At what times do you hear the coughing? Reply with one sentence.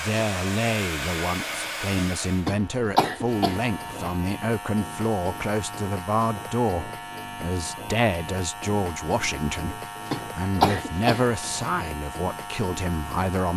You can hear the coughing from 2.5 to 4.0 s and from 10.1 to 11.7 s.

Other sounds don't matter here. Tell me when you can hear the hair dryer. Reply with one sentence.
You can hear the hair dryer from 0.0 to 2.5 s.